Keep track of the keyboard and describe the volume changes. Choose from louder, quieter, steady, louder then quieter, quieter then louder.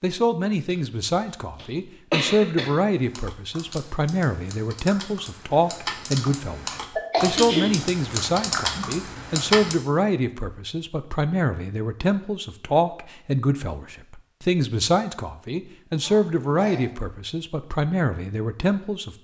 louder.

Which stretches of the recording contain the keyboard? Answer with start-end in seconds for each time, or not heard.
3.0-9.8.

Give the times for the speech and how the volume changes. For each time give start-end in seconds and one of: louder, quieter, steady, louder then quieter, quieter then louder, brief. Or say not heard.
0.0-19.1 steady.